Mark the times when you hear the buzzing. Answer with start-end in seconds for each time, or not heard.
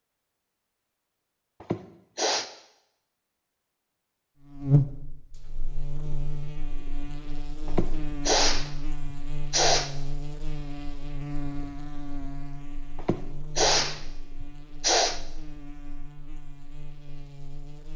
4.5-17.9.